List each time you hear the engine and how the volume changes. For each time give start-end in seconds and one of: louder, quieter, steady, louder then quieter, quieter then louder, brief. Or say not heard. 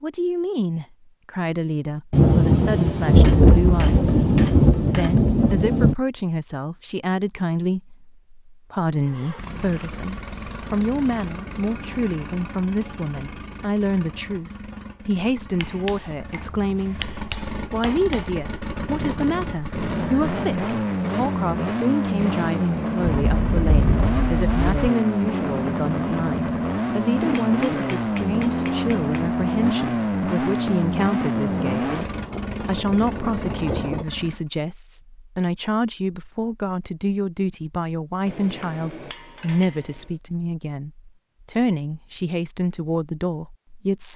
8.9-34.4 louder.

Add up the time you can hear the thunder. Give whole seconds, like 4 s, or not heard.
8 s.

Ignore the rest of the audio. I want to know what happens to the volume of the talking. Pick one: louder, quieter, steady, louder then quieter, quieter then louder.
steady.